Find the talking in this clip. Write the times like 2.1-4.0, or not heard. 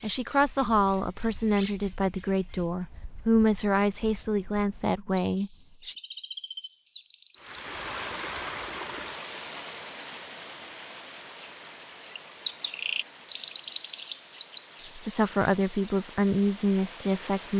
0.0-6.0, 14.9-17.5.